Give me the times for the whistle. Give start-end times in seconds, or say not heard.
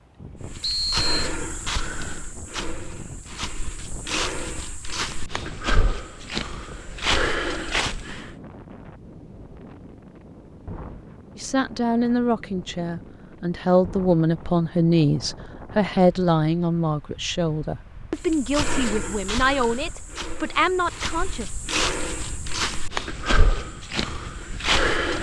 0.6-1.3.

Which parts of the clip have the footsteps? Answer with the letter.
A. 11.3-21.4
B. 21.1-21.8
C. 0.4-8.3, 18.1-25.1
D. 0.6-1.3
C.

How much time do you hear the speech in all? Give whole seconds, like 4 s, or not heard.
10 s.